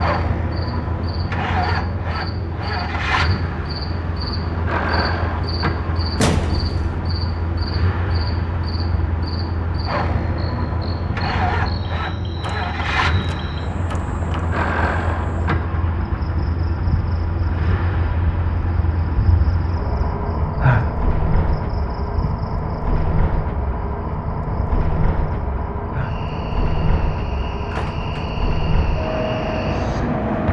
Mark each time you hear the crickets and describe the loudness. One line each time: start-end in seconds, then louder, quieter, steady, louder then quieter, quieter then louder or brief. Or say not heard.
0.0-30.4 louder then quieter.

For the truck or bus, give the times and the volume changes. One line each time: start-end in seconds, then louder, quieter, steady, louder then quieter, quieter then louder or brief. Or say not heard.
0.0-30.4 steady.